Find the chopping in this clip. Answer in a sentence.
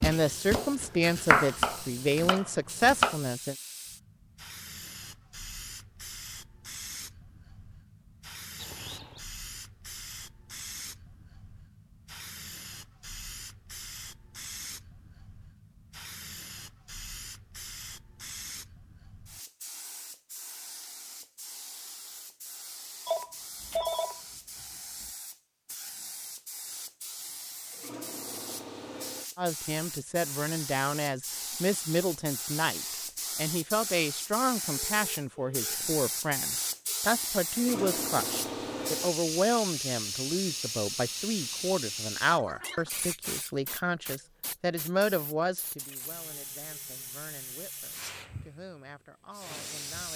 You can hear the chopping from 0.0 to 3.1 s.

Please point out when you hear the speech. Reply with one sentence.
You can hear the speech from 0.0 to 3.5 s and from 29.4 to 50.1 s.